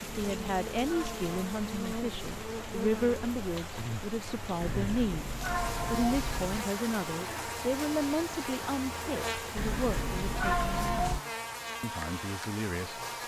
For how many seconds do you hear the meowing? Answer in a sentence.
You can hear the meowing for 5 seconds altogether.